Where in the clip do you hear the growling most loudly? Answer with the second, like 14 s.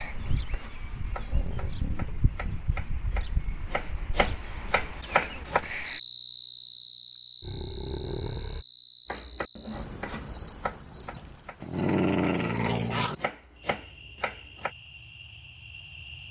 12 s.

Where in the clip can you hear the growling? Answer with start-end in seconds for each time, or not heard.
1.1-2.2, 7.4-8.7, 11.2-13.2.